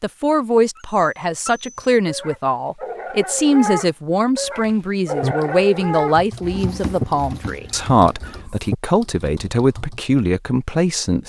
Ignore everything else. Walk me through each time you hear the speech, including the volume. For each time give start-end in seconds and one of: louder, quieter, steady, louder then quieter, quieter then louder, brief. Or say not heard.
0.0-11.2 steady.